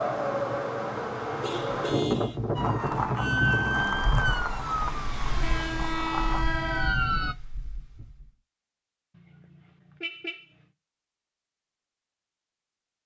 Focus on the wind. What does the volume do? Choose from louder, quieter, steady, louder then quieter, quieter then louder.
quieter.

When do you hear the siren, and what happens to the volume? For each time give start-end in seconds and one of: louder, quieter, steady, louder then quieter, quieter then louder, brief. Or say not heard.
2.5-7.3 quieter then louder.